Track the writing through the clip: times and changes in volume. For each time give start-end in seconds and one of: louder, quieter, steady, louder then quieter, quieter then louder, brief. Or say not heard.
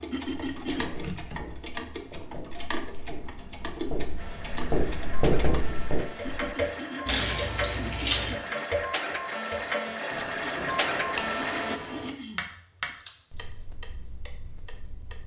0.5-6.5 louder.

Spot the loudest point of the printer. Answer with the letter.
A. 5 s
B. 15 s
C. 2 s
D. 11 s
D.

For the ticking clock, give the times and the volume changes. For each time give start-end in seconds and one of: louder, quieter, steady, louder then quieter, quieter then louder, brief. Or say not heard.
0.0-15.2 louder then quieter.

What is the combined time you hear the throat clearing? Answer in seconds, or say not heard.
5 s.